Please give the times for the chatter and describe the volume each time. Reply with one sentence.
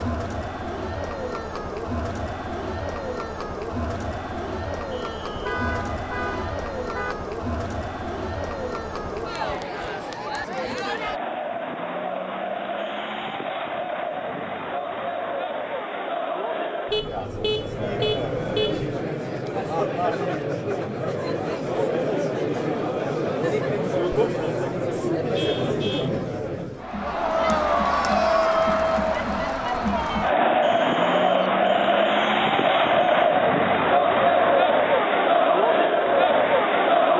You can hear the chatter from 0.0 to 37.1 s, getting louder.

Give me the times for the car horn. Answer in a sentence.
You can hear the car horn from 5.3 to 7.2 s, from 16.9 to 18.9 s and from 25.3 to 26.1 s.